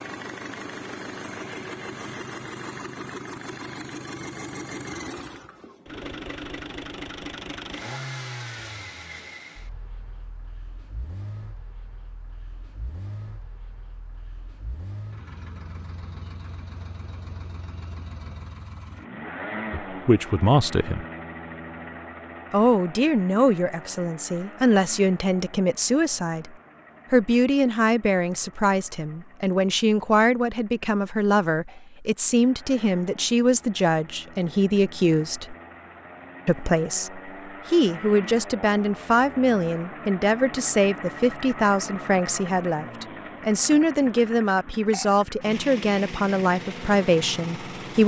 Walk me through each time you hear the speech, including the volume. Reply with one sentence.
The speech can be heard briefly from 19.7 to 21.1 s; from 22.5 to 35.5 s, at a steady volume; and from 36.5 to 48.0 s, at a steady volume.